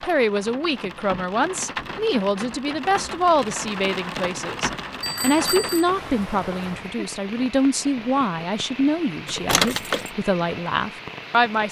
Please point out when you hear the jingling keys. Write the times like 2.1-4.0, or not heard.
9.2-10.1.